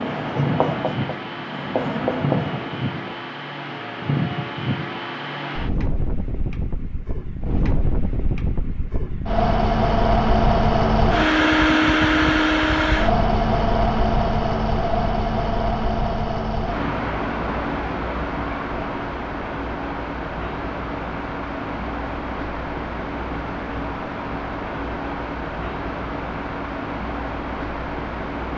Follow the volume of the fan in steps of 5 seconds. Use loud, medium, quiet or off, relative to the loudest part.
medium, medium, loud, medium, medium, medium.